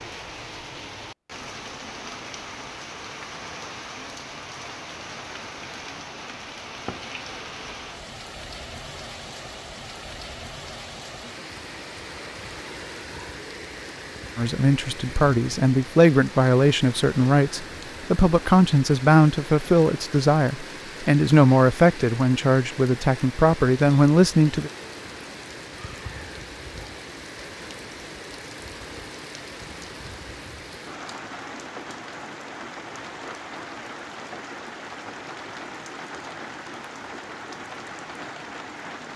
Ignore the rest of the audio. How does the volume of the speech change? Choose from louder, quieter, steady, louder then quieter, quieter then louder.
steady.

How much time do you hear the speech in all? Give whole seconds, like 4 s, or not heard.
10 s.